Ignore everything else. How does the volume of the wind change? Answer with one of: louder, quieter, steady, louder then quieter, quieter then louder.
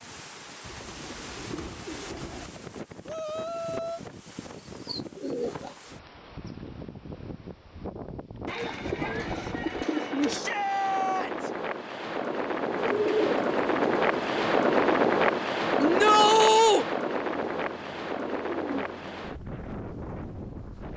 louder then quieter.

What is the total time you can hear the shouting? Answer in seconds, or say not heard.
3 s.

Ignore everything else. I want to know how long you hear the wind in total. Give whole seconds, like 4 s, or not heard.
21 s.